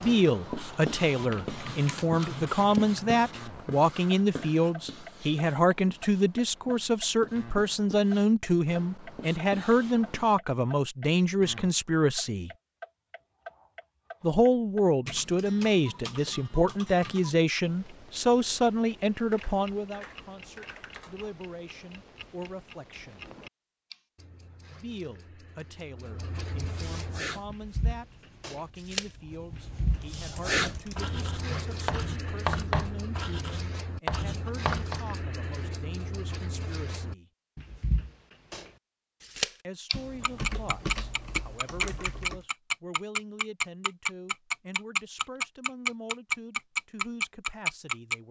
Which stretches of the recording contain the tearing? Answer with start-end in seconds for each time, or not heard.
not heard.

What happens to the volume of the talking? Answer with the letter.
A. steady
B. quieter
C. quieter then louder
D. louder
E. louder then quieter
B.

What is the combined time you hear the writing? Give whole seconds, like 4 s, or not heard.
19 s.